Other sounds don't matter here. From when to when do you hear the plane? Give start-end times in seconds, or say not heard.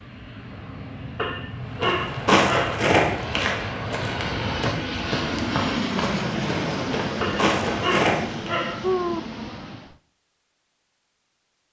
0.0-10.0.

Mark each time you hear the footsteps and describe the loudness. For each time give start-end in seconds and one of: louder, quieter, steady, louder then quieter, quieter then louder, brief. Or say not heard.
1.8-8.5 quieter then louder.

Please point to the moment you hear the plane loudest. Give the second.
6 s.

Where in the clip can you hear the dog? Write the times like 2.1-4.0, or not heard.
1.1-2.9, 7.2-9.2.